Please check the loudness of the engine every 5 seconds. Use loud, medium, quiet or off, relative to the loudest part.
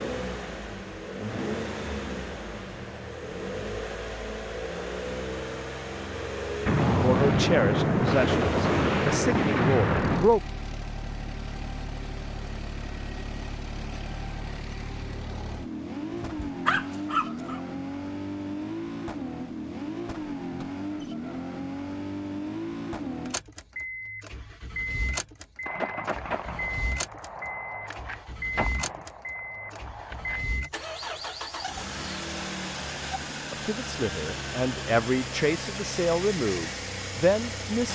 loud, loud, medium, loud, loud, loud, loud, loud.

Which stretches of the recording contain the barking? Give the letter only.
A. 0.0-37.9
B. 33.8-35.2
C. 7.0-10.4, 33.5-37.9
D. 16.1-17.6
D.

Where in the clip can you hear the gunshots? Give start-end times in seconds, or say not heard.
6.7-10.3, 25.6-30.4.